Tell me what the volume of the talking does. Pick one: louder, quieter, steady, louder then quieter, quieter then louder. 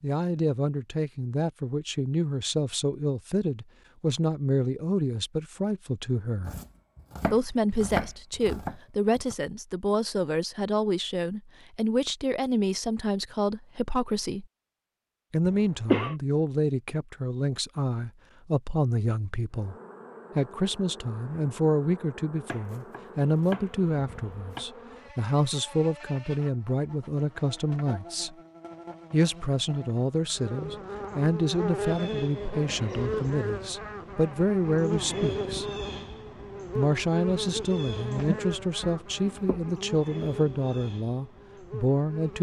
steady.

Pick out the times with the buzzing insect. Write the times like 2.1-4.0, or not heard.
19.5-42.3.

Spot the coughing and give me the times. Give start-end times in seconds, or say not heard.
15.4-16.1.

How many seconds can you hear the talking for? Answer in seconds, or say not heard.
38 s.